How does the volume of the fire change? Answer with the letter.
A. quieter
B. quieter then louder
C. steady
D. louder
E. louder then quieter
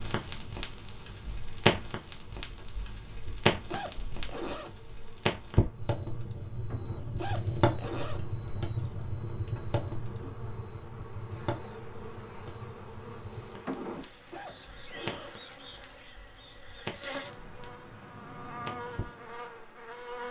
A.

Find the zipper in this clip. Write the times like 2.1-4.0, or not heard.
3.6-4.7, 7.2-8.2, 14.3-15.3.